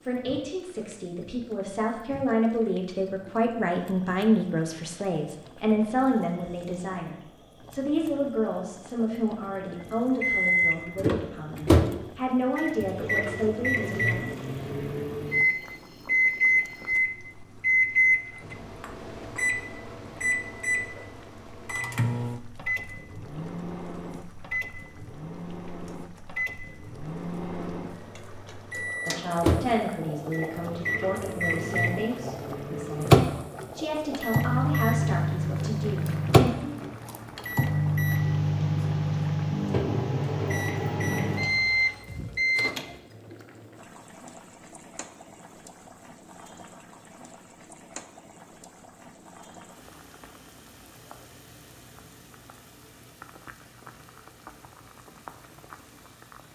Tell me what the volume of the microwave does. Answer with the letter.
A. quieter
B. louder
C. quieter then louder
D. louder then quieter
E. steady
C.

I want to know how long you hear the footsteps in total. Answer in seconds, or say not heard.
not heard.